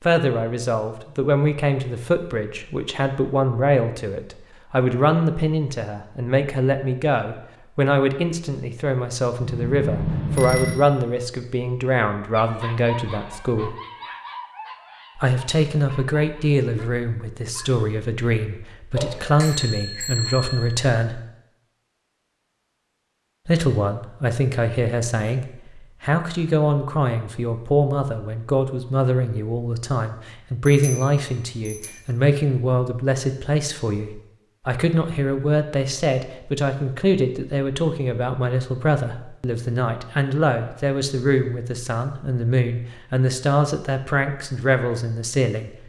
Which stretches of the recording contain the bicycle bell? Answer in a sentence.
You can hear the bicycle bell from 9.4 to 10.8 s, from 18.9 to 20.8 s and from 30.6 to 31.9 s.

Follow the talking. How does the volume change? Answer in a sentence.
The volume of the talking stays about the same.